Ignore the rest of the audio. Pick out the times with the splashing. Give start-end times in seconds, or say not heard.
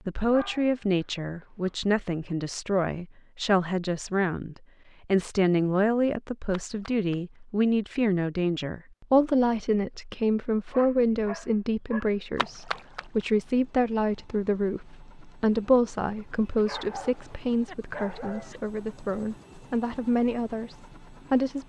6.5-7.2, 12.3-13.2.